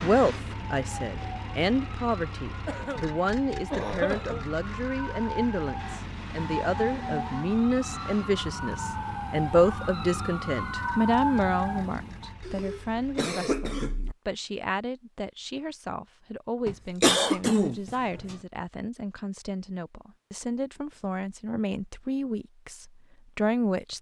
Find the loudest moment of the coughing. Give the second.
17 s.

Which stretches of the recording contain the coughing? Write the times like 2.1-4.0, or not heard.
2.6-4.5, 12.4-14.2, 16.6-18.4.